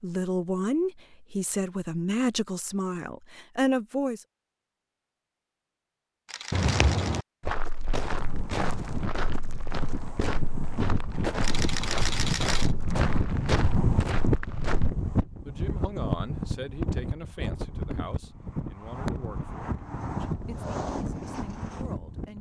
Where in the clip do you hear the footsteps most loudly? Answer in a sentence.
The volume of the footsteps peaks at 7 seconds.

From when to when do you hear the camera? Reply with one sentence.
You can hear the camera from 6.2 to 7.2 s and from 11.4 to 12.8 s.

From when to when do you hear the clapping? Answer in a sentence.
You can't hear the clapping here.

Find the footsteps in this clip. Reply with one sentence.
You can hear the footsteps from 6.5 to 14.9 s.